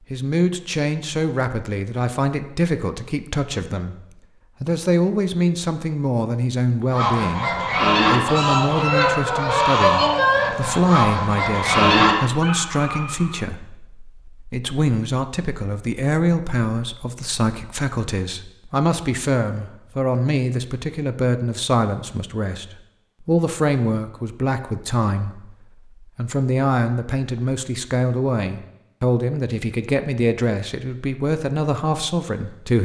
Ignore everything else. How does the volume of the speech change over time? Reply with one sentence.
The volume of the speech stays about the same.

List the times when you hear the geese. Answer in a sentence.
The geese can be heard from 6.9 to 13.3 s.